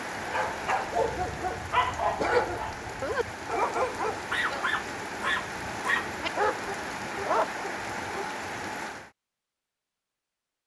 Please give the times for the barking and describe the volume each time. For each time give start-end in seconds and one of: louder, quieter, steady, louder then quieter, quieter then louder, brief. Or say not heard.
0.2-8.2 steady.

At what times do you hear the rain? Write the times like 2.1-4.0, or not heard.
0.0-9.1.